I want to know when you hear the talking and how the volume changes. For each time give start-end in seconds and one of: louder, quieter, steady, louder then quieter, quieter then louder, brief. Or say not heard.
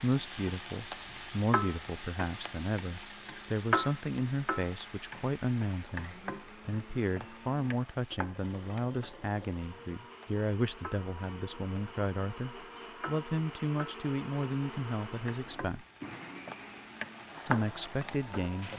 0.0-15.8 steady
17.4-18.7 brief.